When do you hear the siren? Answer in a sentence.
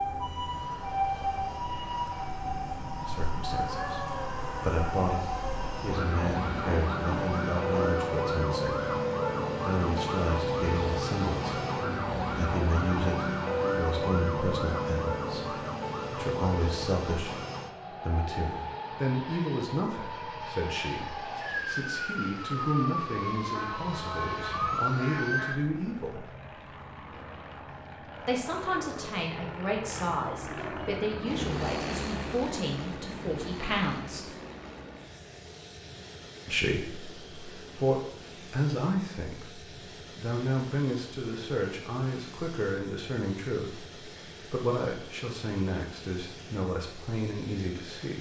You can hear the siren from 0.0 to 25.6 s.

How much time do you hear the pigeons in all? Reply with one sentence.
You can't hear the pigeons here.